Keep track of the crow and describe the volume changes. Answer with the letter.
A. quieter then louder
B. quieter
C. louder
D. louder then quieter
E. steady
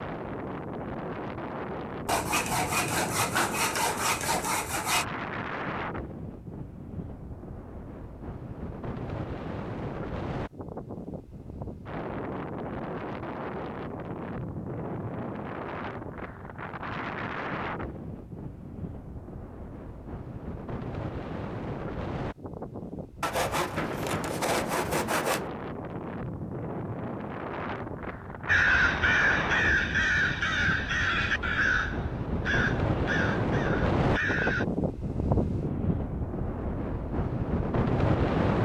B.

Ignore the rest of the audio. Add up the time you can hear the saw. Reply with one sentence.
You can hear the saw for 5 seconds altogether.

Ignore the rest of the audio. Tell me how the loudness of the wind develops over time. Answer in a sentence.
The volume of the wind goes up.